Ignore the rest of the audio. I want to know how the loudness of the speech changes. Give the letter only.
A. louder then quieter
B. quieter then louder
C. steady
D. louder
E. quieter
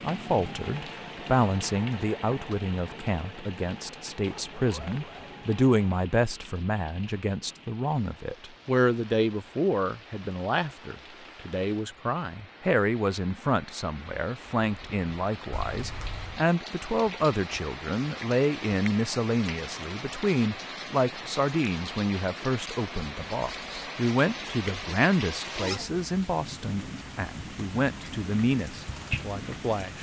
C.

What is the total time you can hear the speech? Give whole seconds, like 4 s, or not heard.
30 s.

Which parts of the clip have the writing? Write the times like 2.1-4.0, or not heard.
not heard.